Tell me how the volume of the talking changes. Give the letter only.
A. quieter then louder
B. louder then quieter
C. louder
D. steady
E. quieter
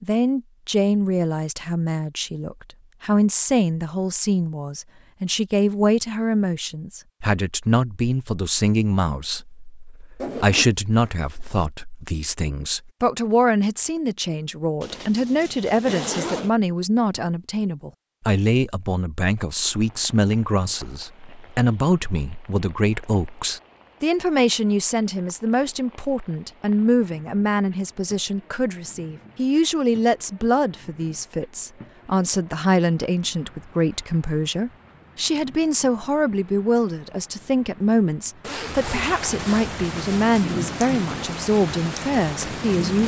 D.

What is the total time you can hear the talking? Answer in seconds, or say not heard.
43 s.